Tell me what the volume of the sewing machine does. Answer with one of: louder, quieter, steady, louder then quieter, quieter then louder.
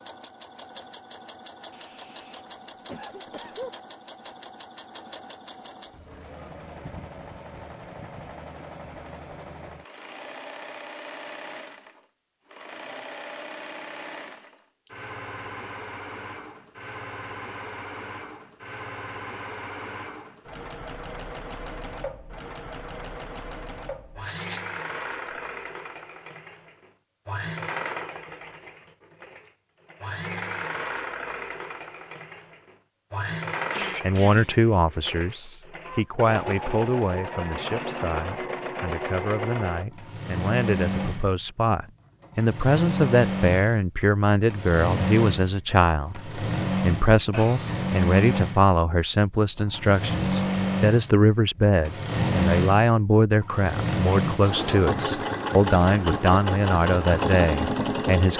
louder.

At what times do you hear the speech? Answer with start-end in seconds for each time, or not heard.
34.0-58.3.